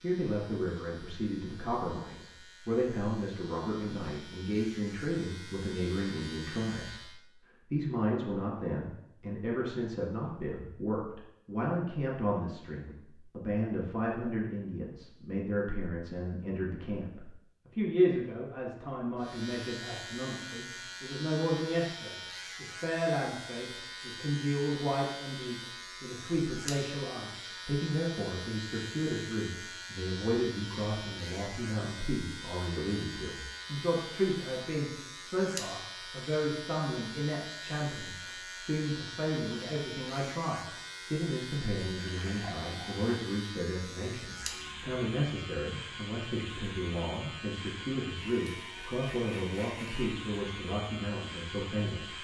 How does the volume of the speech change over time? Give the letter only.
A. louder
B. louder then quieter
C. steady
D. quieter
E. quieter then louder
C.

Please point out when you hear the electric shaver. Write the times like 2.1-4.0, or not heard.
0.0-7.2, 19.1-52.1.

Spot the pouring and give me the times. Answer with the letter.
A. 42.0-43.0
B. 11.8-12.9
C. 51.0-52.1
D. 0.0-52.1
A.